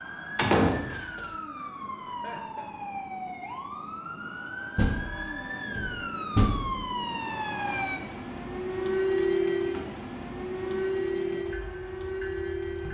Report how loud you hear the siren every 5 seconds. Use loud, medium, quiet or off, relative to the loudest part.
medium, loud, loud.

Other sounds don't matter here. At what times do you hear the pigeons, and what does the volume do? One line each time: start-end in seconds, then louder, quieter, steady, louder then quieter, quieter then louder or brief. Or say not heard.
not heard.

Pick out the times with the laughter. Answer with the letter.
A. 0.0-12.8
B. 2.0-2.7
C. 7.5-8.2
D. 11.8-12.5
B.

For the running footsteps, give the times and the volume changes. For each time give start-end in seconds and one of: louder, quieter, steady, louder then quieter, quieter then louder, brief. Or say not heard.
not heard.